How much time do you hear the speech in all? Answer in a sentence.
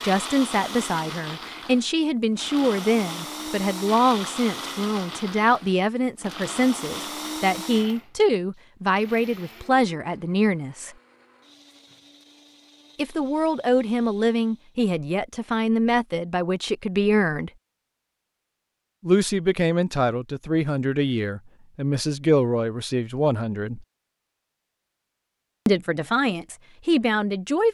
The speech can be heard for 22 seconds in total.